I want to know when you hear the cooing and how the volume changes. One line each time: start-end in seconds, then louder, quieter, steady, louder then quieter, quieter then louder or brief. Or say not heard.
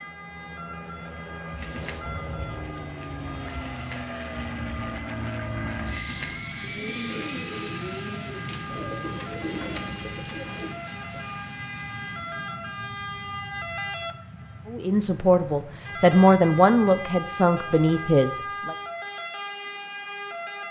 1.5-11.2 louder.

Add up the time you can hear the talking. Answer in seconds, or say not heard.
4 s.